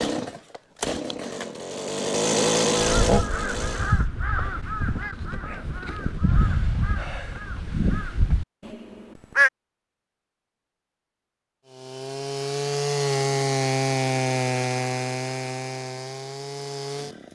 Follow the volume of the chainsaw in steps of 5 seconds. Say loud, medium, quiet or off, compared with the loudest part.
loud, off, loud, medium.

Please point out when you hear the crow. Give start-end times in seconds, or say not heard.
2.8-9.5.